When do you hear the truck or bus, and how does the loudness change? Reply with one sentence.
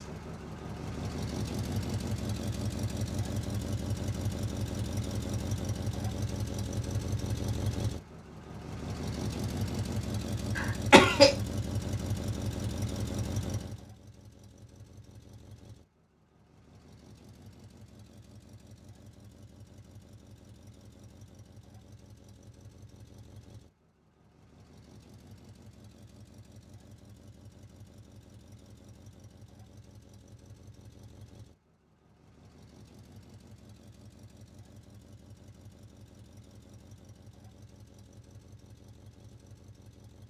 You can hear the truck or bus from 0.0 to 40.2 s, getting quieter.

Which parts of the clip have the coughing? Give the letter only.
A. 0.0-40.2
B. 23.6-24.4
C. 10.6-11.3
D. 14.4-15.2
C.